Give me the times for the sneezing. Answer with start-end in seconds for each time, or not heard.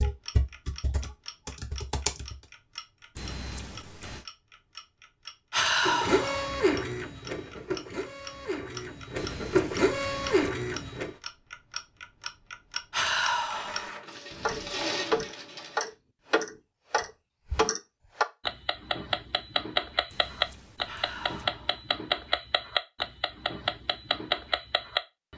not heard.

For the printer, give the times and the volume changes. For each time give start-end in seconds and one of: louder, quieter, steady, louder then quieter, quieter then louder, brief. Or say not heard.
5.8-11.1 quieter then louder
13.3-15.9 brief.